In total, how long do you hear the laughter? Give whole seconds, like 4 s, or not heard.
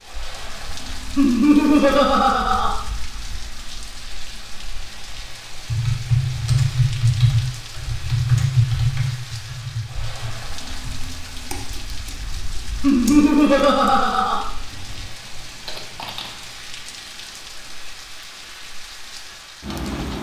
3 s.